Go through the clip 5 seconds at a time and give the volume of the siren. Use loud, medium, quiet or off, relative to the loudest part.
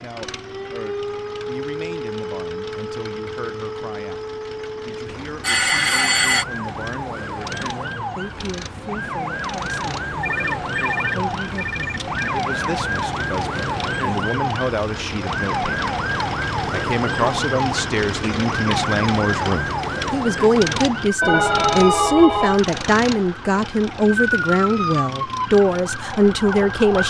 medium, medium, loud, loud, loud, loud.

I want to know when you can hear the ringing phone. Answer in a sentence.
You can hear the ringing phone from 5.4 to 6.5 s, from 10.2 to 12.2 s and from 21.2 to 22.6 s.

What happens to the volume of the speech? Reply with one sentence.
The loudness of the speech goes up.